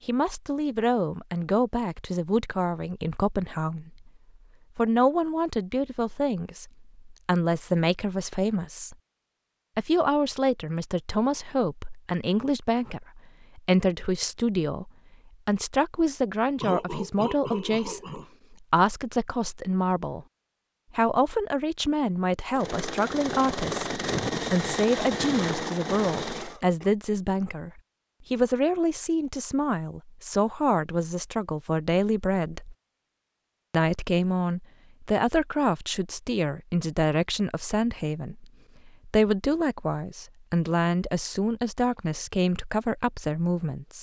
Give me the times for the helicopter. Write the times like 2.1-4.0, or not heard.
22.5-26.6.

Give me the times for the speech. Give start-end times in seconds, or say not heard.
0.1-4.1, 4.8-8.9, 9.8-20.2, 20.9-32.8, 33.7-43.9.